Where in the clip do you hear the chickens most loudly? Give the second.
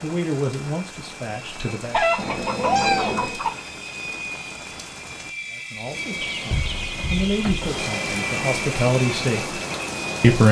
2 s.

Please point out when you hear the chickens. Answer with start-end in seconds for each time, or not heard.
1.9-3.5, 6.2-7.8.